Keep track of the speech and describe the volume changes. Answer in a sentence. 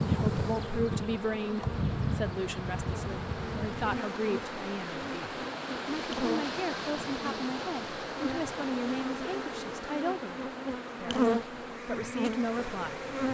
The volume of the speech stays about the same.